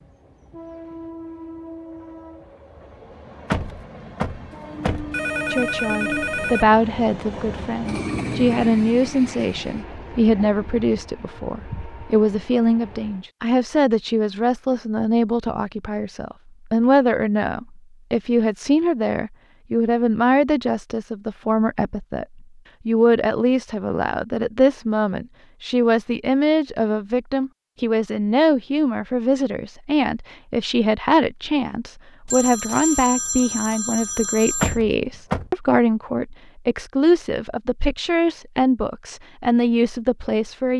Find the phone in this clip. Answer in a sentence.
You can hear the phone from 5.1 to 6.7 s and from 32.2 to 34.8 s.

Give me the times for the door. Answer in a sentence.
The door can be heard from 3.5 to 5.2 s and from 34.6 to 35.5 s.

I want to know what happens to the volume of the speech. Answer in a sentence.
The volume of the speech stays about the same.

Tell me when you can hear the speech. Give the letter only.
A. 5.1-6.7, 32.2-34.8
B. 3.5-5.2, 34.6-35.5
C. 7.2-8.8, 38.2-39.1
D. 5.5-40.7
D.